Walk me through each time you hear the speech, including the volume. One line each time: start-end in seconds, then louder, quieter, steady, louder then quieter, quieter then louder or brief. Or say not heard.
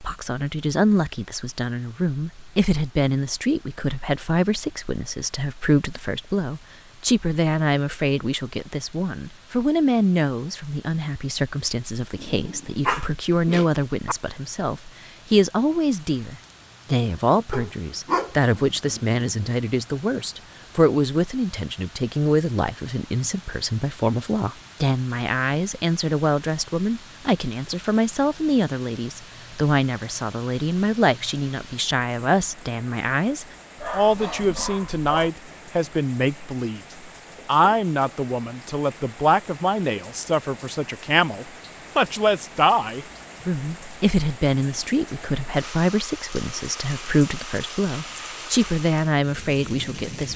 0.0-36.8 steady
37.5-50.3 steady.